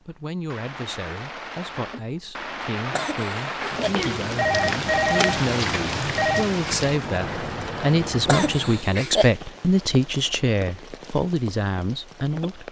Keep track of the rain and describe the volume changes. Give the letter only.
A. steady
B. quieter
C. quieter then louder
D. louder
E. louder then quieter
E.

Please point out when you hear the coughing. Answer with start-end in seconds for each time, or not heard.
2.9-3.9, 8.2-9.3.